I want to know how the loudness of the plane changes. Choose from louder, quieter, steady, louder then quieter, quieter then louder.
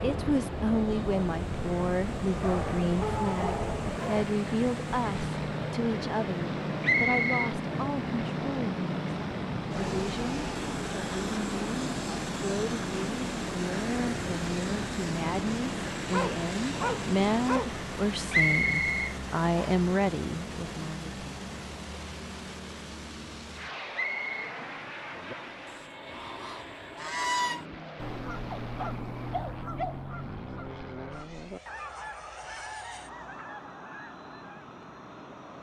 quieter.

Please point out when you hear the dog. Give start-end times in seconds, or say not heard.
2.4-4.2, 16.1-17.8, 28.5-30.0.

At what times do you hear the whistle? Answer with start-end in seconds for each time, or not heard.
6.8-7.5, 18.3-19.9, 23.9-24.5.